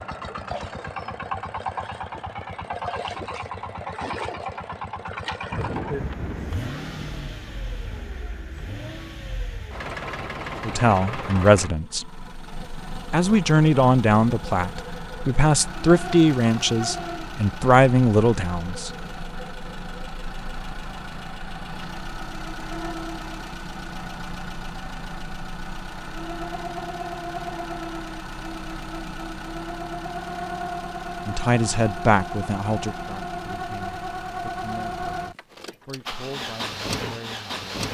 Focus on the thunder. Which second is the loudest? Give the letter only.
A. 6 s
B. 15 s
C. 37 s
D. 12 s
A.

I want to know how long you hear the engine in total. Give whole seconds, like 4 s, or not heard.
38 s.